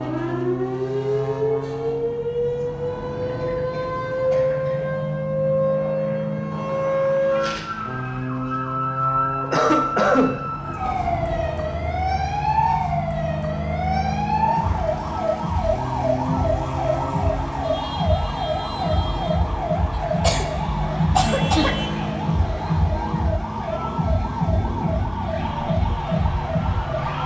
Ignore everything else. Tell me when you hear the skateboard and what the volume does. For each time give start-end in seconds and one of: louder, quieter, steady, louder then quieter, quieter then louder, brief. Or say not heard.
not heard.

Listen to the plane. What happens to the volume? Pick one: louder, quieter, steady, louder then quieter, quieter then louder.
steady.